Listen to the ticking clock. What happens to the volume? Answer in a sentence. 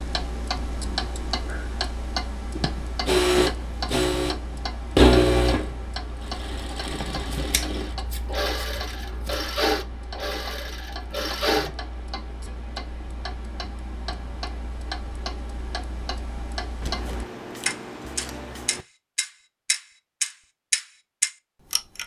The volume of the ticking clock goes down, then up.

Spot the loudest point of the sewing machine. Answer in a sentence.
The loudest moment of the sewing machine is at 5 seconds.